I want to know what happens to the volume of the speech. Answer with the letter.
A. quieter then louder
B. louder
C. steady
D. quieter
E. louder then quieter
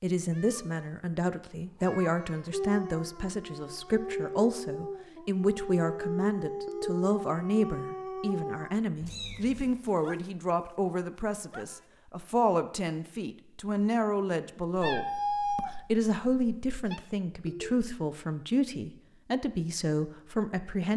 C.